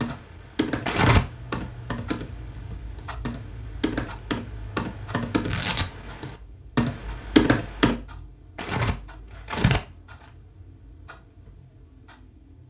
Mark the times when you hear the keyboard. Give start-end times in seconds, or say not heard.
0.0-8.0.